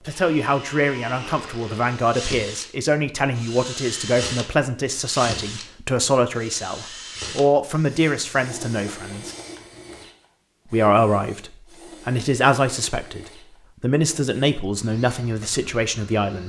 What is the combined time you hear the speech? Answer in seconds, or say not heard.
15 s.